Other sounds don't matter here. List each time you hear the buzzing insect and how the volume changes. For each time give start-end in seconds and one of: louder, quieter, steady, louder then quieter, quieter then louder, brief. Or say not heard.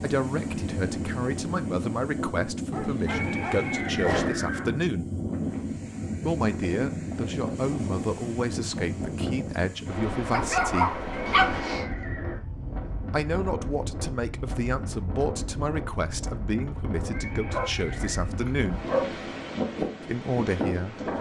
not heard.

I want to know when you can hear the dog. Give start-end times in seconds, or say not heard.
2.7-4.3, 10.2-11.6, 17.5-19.2.